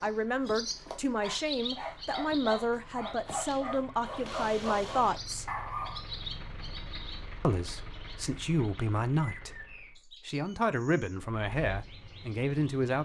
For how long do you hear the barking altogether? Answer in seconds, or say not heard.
6 s.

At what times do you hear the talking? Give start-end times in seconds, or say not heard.
0.0-5.5, 7.4-13.0.